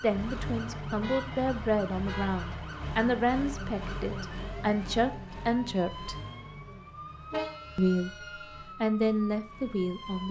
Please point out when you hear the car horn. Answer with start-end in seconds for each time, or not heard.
1.0-2.6, 7.3-8.7.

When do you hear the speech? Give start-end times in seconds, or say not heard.
0.0-6.2, 7.8-10.2.